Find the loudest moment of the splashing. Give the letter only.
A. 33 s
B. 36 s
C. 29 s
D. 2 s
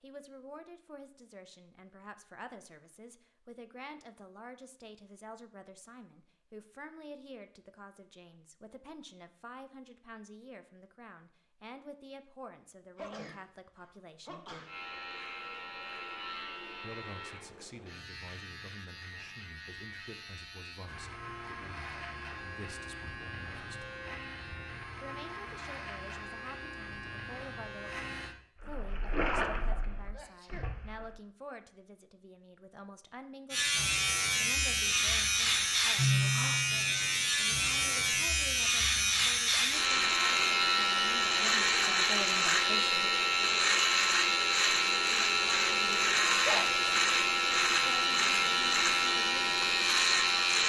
C.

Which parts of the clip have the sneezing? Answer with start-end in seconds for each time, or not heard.
12.9-14.8, 30.1-30.7, 46.0-46.9.